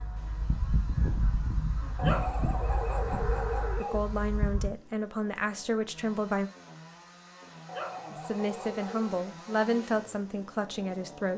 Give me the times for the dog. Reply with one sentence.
The dog can be heard from 1.9 to 4.0 s and from 7.7 to 9.2 s.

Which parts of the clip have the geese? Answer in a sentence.
You can hear the geese from 0.0 to 4.7 s.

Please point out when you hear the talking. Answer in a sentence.
You can hear the talking from 3.8 to 6.5 s and from 8.1 to 11.3 s.